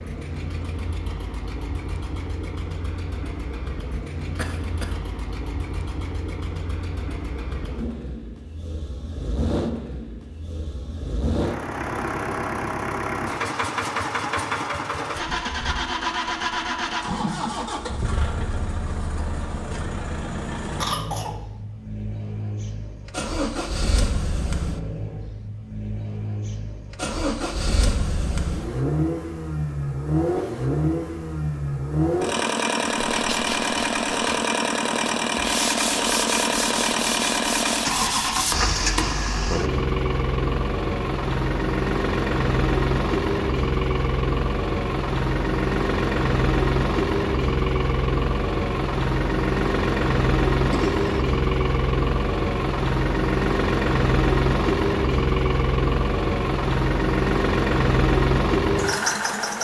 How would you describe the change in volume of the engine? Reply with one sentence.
The loudness of the engine goes up.